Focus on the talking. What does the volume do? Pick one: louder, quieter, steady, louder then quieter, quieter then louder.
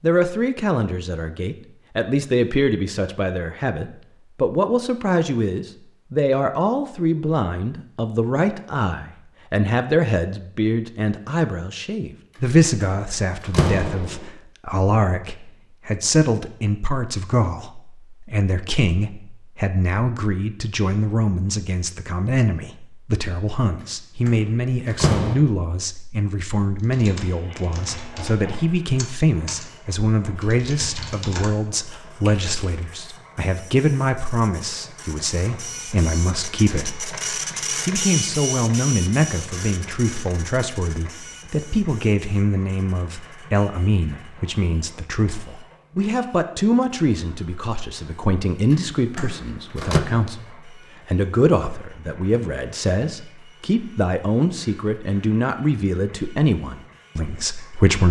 steady.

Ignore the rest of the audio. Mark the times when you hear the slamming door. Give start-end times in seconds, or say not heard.
12.8-14.2, 24.2-25.4, 48.7-50.0.